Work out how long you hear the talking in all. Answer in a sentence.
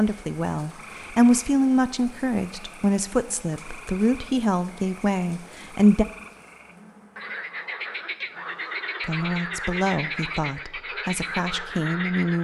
You can hear the talking for 9 seconds altogether.